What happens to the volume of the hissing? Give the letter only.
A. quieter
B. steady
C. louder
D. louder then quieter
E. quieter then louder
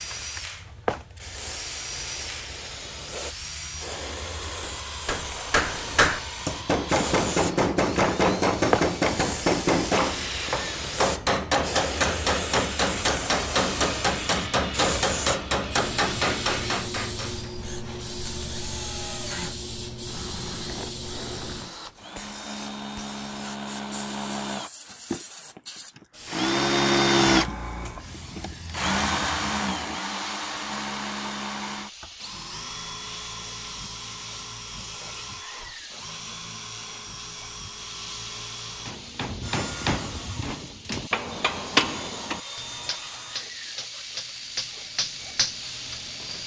A.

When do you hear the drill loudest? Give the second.
27 s.